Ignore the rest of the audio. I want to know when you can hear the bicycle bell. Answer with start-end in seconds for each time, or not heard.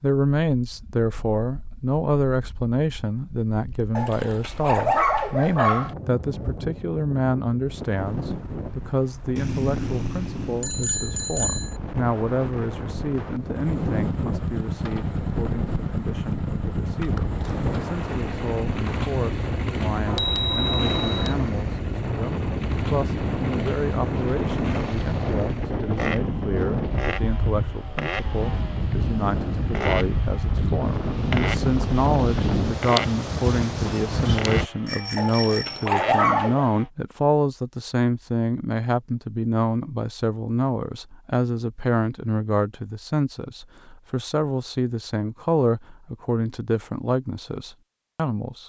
9.3-11.8, 20.1-21.4, 34.9-35.9.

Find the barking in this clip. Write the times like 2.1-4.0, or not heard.
4.0-6.0, 35.1-36.7.